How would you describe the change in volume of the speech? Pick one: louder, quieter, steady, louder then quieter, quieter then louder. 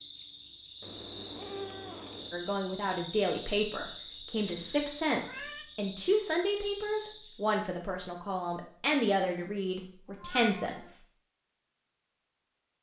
steady.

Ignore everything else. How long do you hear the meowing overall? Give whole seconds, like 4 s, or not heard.
4 s.